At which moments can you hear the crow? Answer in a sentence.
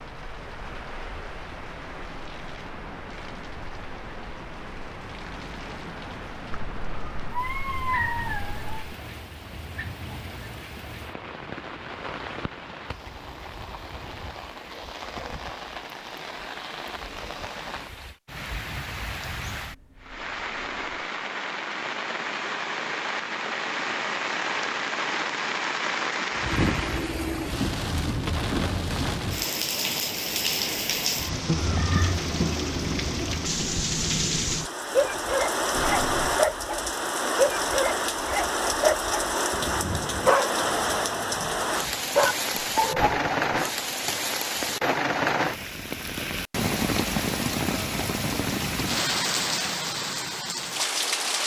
The crow can't be heard in this clip.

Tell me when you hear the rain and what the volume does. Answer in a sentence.
You can hear the rain from 0.0 to 51.4 s, getting louder.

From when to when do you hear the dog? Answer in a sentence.
You can hear the dog from 35.0 to 43.5 s.